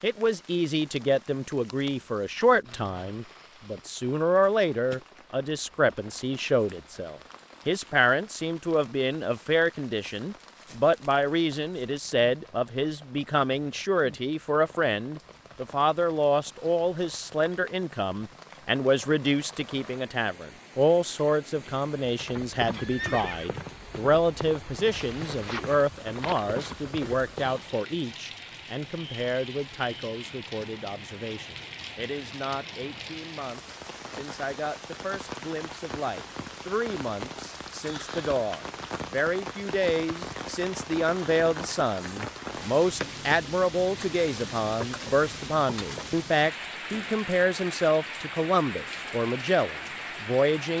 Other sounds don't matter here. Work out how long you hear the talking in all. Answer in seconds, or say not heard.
51 s.